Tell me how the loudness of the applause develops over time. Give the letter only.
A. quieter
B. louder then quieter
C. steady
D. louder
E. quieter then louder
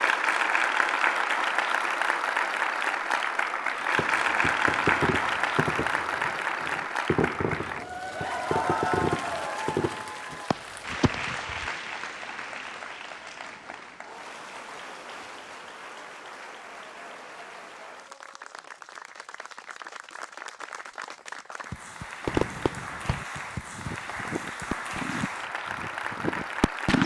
E.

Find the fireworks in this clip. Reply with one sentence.
You can hear the fireworks from 4.0 to 11.7 s and from 22.2 to 27.0 s.